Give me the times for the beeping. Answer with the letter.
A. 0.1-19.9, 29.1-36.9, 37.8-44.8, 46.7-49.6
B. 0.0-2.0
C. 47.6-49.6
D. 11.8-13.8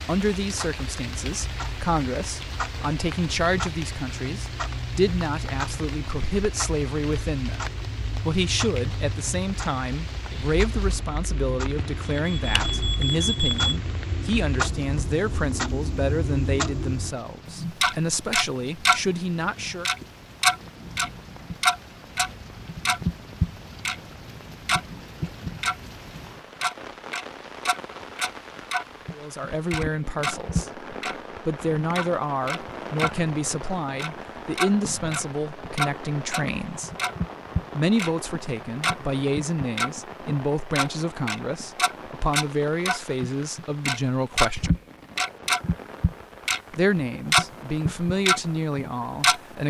D.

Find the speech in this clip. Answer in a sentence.
The speech can be heard from 0.1 to 19.9 s, from 29.1 to 36.9 s, from 37.8 to 44.8 s and from 46.7 to 49.6 s.